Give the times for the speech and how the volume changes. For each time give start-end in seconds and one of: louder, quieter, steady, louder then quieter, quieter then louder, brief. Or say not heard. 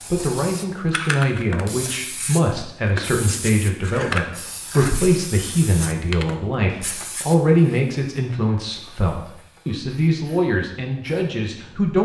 0.0-12.0 steady.